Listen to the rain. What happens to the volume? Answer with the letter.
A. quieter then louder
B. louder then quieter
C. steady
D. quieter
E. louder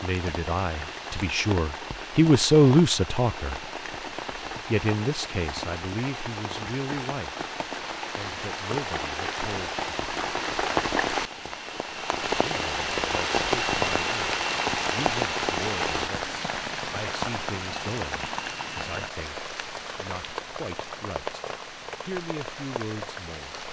B.